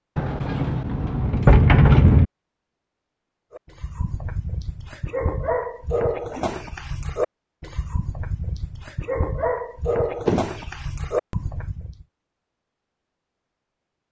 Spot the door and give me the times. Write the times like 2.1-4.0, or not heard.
0.1-2.2, 10.2-10.7.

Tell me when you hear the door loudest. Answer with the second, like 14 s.
2 s.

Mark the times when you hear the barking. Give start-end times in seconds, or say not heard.
3.5-12.1.